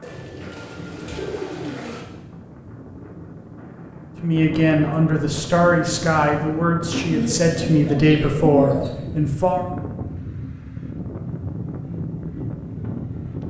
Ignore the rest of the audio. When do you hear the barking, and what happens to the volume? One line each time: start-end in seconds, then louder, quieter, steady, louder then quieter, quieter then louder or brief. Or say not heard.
not heard.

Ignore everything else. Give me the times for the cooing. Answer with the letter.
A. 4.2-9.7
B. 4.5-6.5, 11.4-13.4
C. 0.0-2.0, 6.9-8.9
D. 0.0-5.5
C.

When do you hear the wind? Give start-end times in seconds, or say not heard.
0.0-13.4.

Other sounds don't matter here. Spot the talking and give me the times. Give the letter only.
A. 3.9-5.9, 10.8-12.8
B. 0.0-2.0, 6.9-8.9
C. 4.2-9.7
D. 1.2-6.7
C.